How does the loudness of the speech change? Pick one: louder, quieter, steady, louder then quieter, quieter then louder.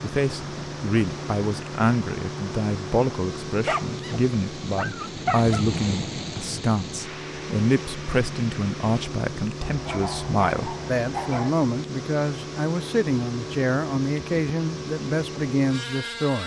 steady.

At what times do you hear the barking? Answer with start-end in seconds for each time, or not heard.
3.6-5.7, 9.6-11.6.